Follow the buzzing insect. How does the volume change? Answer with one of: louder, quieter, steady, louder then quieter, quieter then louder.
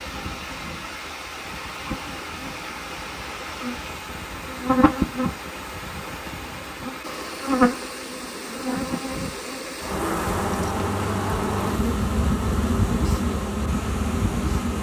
louder.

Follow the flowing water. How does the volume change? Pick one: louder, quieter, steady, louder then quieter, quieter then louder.
steady.